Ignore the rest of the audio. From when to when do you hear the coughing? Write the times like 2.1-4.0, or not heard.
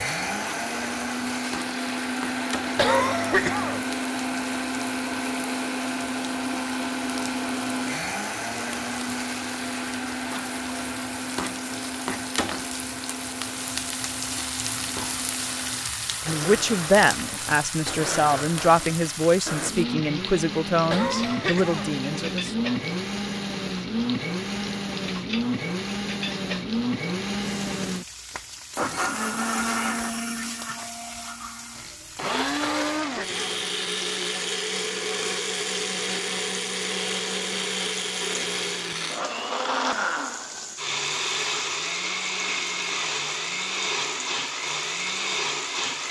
2.8-3.9, 20.9-21.9, 32.6-33.5.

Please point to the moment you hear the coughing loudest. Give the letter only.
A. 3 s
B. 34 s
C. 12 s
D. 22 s
A.